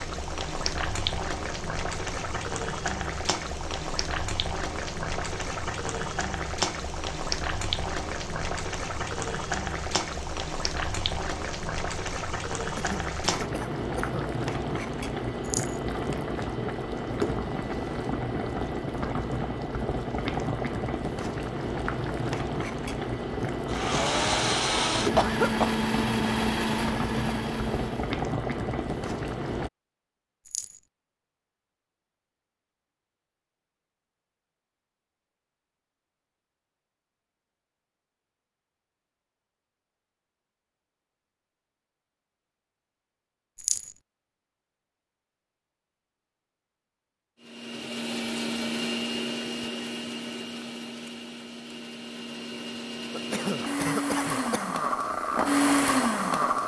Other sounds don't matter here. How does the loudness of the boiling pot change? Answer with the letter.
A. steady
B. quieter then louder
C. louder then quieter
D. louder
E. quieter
A.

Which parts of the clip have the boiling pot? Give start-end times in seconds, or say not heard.
0.0-29.7.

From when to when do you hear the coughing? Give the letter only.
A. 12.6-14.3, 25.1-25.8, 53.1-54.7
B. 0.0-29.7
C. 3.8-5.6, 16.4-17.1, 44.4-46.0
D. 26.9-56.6
A.